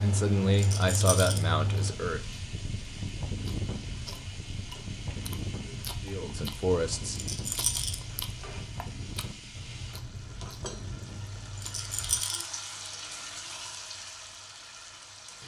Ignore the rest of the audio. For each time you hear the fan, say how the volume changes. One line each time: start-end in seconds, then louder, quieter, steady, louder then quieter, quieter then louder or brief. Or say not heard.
0.0-12.2 quieter.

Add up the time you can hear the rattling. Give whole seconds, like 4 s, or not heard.
3 s.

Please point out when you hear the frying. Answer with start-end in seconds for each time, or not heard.
0.0-15.4.